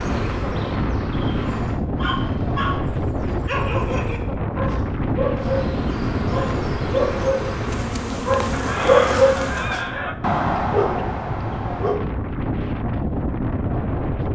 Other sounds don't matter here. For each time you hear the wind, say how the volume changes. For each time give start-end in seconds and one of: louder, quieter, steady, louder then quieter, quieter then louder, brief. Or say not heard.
0.0-14.3 quieter then louder.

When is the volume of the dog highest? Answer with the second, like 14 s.
9 s.